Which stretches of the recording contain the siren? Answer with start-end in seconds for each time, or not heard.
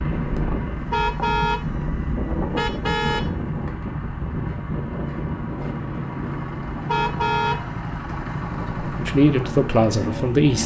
not heard.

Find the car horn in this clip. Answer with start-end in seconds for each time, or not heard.
0.9-1.6, 2.5-3.3, 6.8-7.6.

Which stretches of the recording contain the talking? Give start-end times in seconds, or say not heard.
8.8-10.6.